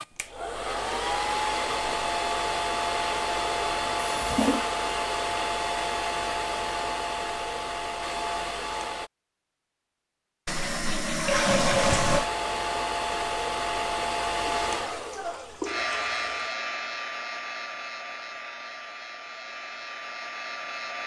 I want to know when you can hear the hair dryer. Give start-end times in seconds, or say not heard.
0.0-9.1, 11.8-21.0.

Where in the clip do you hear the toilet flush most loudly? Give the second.
12 s.